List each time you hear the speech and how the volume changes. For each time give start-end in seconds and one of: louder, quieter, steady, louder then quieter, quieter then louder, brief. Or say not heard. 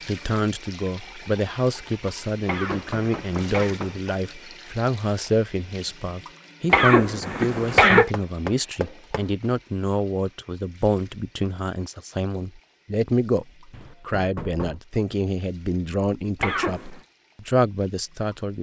0.1-18.5 steady.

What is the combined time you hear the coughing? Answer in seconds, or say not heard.
3 s.